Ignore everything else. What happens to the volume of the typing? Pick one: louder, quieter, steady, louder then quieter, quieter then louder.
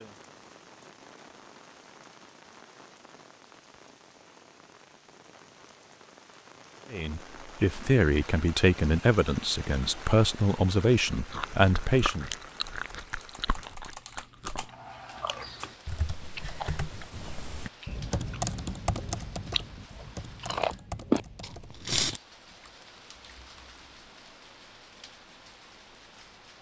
louder then quieter.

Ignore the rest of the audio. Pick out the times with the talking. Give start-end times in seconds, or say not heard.
6.9-12.3.